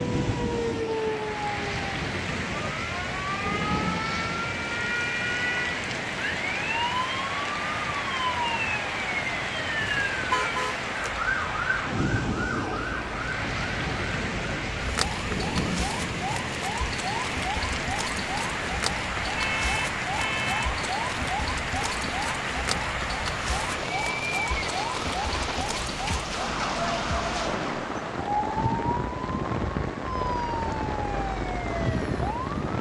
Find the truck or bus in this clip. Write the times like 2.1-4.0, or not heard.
not heard.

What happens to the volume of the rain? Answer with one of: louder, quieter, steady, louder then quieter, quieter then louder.
steady.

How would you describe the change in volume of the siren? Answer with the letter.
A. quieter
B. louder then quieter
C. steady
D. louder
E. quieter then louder
C.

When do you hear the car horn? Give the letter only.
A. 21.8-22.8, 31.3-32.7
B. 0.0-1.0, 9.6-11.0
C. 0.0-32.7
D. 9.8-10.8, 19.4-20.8
D.